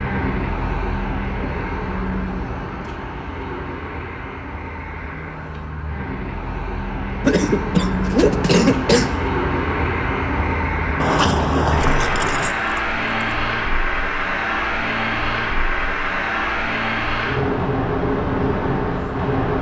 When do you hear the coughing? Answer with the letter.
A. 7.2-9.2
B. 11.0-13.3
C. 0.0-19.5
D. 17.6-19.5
A.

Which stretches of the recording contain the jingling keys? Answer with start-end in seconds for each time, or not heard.
11.0-13.3.